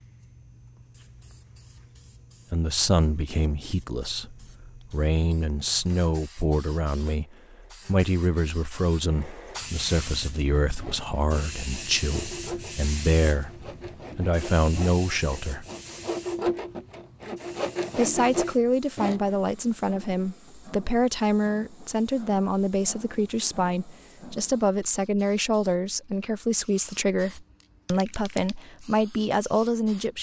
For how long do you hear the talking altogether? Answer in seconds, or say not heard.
25 s.